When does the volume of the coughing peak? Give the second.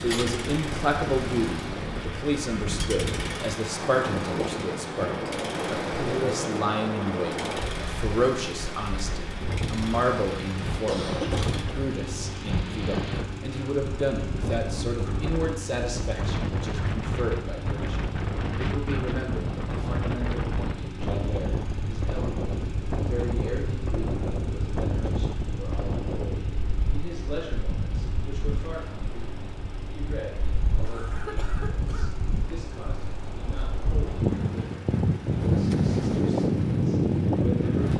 11 s.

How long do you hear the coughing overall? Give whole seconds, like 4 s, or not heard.
2 s.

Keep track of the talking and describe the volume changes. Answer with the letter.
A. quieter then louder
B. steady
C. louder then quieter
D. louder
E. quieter
E.